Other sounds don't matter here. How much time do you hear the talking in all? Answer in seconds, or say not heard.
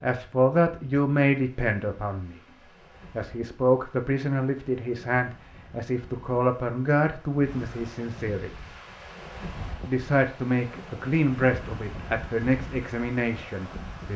12 s.